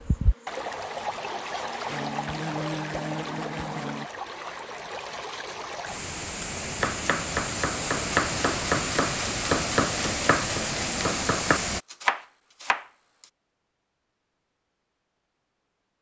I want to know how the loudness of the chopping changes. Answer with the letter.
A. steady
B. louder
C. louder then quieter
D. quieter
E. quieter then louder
A.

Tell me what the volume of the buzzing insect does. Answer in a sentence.
The volume of the buzzing insect goes up.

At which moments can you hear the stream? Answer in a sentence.
The stream can be heard from 0.0 to 11.8 s.